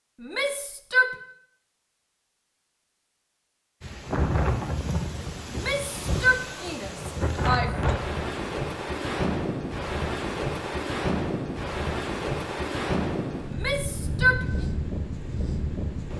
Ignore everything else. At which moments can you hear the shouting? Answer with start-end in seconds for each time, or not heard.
0.2-1.1, 5.5-8.0, 13.4-14.4.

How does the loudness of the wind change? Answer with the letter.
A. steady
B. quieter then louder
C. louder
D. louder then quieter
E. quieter
A.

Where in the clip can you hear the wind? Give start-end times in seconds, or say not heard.
3.8-16.1.